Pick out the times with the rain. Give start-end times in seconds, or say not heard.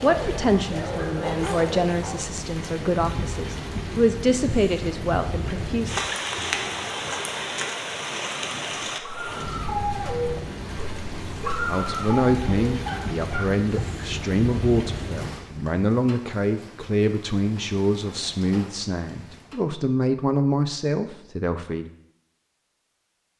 0.0-19.6.